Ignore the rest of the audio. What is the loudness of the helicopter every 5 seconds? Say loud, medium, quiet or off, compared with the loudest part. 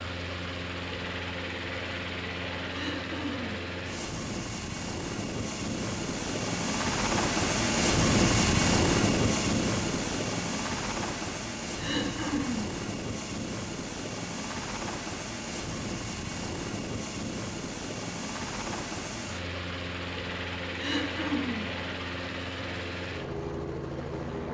medium, loud, medium, medium, medium.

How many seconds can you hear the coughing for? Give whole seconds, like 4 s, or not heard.
3 s.